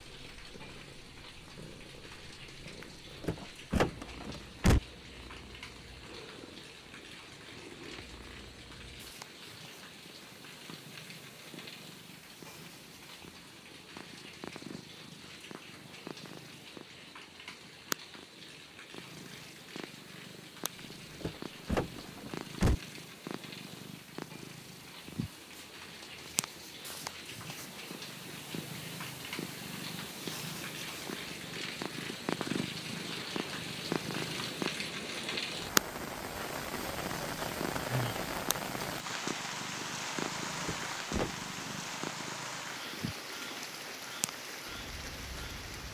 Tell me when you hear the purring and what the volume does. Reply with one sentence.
You can hear the purring from 0.0 to 45.8 s, getting louder then quieter.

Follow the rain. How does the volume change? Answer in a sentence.
The volume of the rain goes up.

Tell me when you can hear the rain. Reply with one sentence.
You can hear the rain from 0.0 to 45.8 s.